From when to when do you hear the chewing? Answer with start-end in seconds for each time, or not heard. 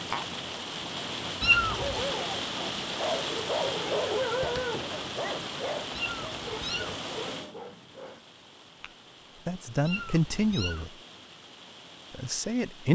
not heard.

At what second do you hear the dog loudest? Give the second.
4 s.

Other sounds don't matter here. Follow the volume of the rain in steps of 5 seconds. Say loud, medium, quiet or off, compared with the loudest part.
loud, medium, quiet.